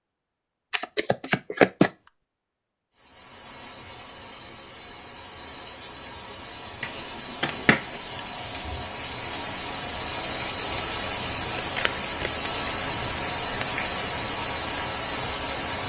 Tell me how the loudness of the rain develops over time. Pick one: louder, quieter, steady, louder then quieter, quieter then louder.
louder.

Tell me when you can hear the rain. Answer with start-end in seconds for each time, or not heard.
3.0-15.8.